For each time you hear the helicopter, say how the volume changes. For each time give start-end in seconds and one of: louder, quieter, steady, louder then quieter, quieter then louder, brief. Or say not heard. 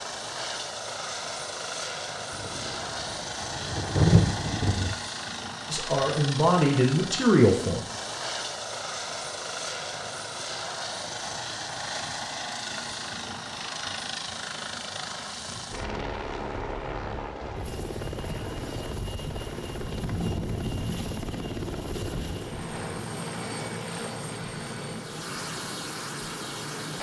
0.0-26.9 steady.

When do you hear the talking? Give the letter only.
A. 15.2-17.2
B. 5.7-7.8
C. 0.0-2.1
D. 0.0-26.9
B.